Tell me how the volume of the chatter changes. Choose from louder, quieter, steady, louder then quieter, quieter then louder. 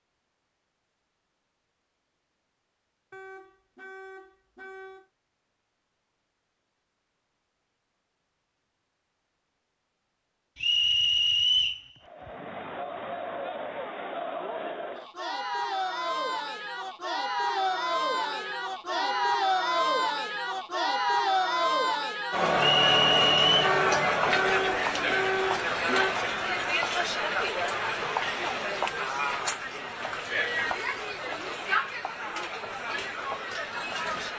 louder then quieter.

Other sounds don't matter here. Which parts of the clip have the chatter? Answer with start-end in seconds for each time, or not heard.
12.0-34.3.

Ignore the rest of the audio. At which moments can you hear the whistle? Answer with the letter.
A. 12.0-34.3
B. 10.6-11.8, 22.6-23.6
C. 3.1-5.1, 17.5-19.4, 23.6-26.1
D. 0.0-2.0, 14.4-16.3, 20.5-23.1
B.